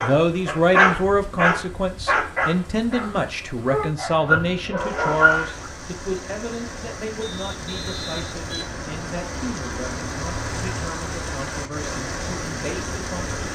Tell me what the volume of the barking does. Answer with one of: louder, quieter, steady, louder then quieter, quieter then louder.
quieter then louder.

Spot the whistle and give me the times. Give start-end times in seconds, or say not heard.
7.2-9.2.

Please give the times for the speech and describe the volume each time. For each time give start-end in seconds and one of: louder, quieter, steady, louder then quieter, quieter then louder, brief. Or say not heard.
0.0-13.4 quieter.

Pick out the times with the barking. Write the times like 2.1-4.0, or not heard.
0.0-5.7.